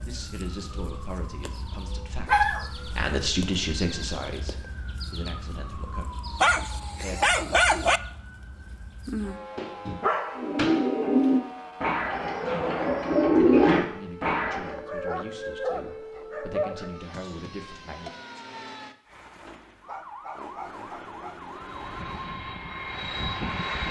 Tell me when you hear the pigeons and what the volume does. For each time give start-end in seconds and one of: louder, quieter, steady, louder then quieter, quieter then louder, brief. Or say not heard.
10.3-14.7 quieter then louder.